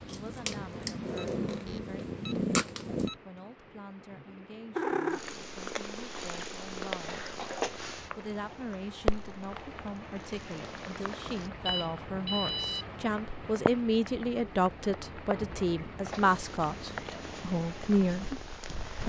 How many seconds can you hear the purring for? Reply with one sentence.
The purring can be heard for 13 seconds in total.